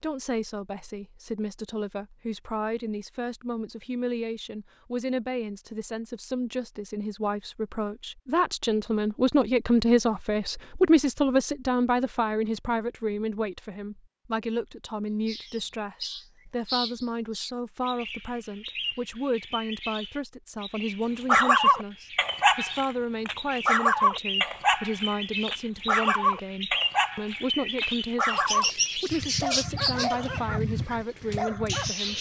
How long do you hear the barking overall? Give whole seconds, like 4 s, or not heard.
11 s.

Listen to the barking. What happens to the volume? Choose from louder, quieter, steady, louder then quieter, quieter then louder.
quieter.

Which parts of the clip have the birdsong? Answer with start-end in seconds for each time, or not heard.
15.2-32.1.